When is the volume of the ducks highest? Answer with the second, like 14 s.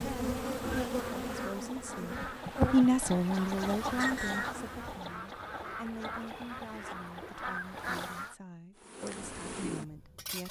4 s.